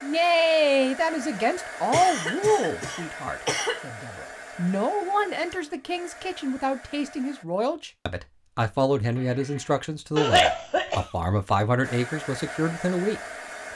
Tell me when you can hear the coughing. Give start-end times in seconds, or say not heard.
1.9-3.8, 10.2-11.1.